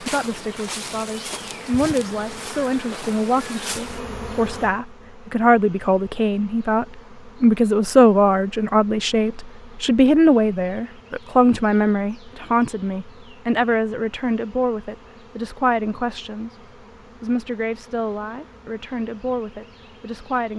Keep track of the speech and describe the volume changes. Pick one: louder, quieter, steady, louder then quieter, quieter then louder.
louder then quieter.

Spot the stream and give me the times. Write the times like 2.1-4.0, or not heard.
not heard.